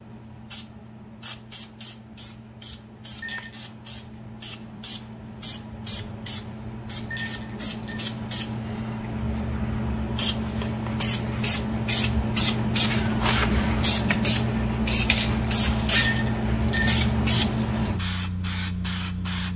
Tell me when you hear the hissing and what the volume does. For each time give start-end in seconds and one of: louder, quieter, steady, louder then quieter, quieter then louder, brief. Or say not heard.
0.0-19.5 louder.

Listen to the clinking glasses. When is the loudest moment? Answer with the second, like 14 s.
16 s.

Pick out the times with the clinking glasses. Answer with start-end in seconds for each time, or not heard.
3.1-3.6, 7.0-8.0, 15.8-17.0.